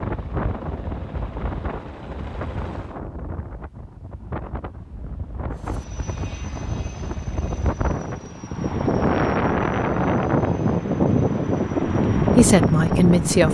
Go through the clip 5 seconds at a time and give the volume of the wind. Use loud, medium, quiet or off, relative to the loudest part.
quiet, medium, loud.